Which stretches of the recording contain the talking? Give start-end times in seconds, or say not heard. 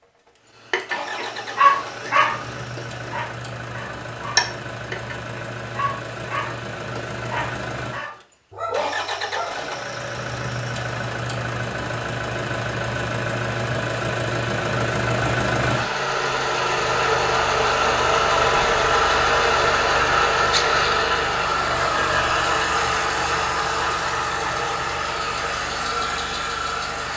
not heard.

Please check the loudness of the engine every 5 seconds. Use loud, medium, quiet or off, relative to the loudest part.
quiet, medium, medium, loud, loud, medium.